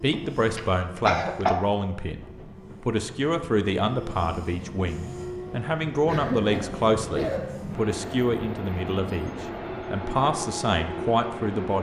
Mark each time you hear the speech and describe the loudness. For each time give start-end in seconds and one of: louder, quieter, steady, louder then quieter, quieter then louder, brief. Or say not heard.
0.0-11.7 steady.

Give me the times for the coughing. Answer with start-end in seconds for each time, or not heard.
0.1-1.6, 6.0-7.4.